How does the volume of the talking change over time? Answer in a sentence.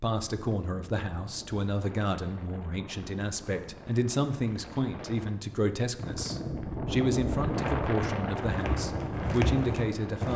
The loudness of the talking stays about the same.